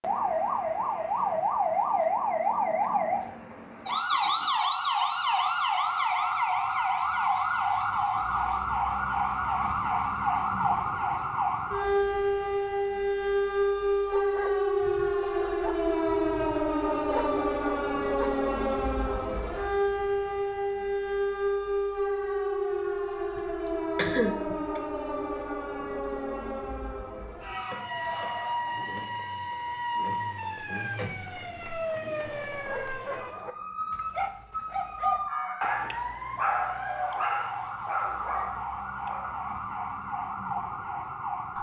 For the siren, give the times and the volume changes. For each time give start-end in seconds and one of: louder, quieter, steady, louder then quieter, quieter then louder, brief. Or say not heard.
0.0-41.5 quieter.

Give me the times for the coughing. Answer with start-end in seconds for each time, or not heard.
23.4-24.8.